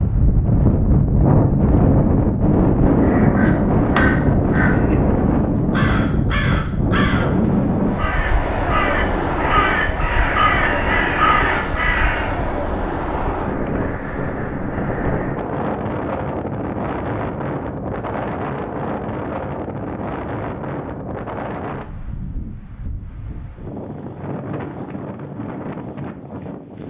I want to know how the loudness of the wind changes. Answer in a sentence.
The loudness of the wind goes down.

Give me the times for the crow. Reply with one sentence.
You can hear the crow from 3.0 to 5.0 s and from 5.7 to 12.4 s.